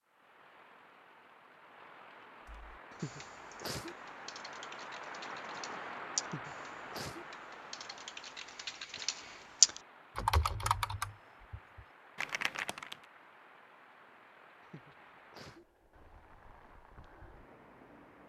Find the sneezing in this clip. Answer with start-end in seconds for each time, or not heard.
2.9-4.0, 6.2-7.2, 14.6-15.7.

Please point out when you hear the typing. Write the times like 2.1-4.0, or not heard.
2.5-12.9.